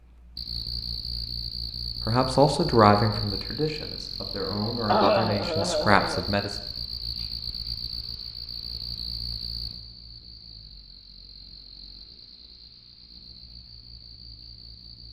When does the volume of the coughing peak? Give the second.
5 s.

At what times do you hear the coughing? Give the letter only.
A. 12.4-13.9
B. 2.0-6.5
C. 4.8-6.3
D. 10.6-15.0
C.